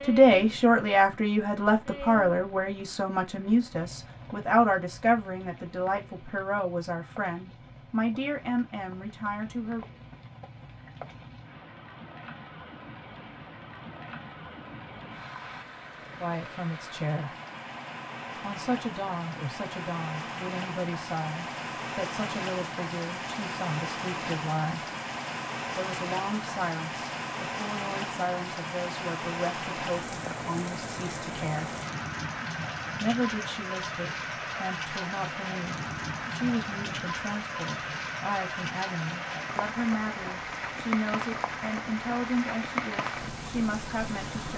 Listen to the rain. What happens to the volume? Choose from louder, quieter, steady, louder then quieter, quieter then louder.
louder.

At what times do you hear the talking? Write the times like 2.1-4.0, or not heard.
0.0-9.8, 16.2-17.4, 18.4-24.9, 25.8-31.8, 32.9-44.5.